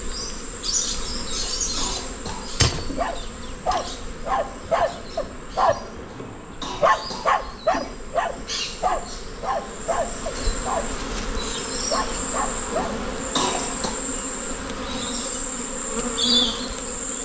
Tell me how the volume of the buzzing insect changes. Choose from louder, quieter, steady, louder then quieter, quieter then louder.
quieter then louder.